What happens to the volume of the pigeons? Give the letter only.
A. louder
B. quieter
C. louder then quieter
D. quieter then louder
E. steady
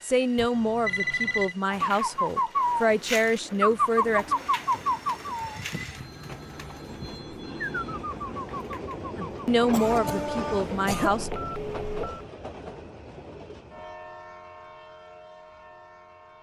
D.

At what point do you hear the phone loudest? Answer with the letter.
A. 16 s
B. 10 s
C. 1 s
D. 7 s
C.